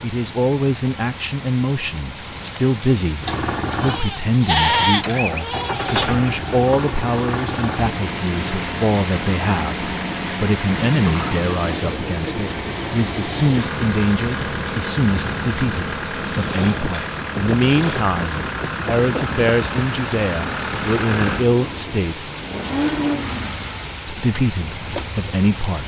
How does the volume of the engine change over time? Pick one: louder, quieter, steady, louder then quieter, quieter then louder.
steady.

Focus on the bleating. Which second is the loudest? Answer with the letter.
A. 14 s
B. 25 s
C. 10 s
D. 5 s
D.